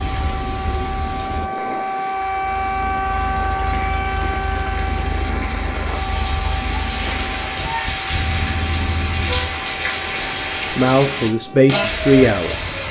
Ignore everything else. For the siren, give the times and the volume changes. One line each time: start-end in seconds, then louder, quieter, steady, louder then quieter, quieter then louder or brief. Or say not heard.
0.0-12.8 quieter.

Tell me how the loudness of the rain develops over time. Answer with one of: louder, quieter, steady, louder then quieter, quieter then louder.
louder.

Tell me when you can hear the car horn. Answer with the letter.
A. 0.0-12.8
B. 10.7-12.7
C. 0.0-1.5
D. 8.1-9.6
D.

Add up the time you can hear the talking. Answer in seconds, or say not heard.
2 s.